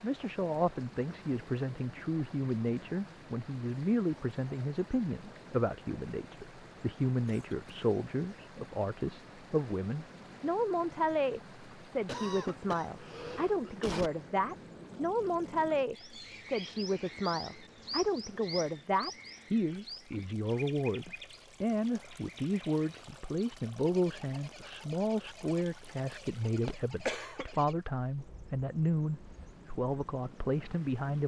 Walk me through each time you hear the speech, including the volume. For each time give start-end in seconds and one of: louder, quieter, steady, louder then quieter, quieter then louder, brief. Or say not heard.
0.0-31.2 steady.